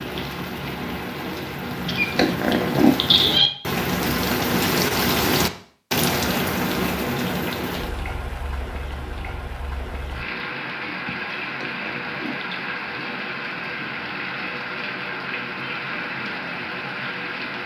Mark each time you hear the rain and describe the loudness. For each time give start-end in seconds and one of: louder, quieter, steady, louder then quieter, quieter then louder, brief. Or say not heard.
0.0-17.6 louder then quieter.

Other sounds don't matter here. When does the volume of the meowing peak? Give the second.
3 s.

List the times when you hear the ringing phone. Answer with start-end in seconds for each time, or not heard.
not heard.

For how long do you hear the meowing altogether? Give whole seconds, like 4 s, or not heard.
3 s.